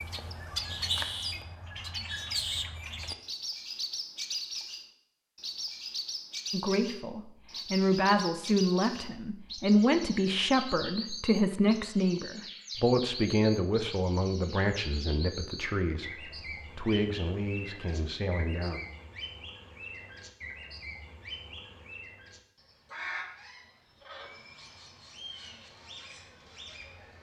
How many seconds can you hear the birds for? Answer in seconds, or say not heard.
27 s.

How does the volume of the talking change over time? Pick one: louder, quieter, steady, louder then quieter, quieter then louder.
quieter.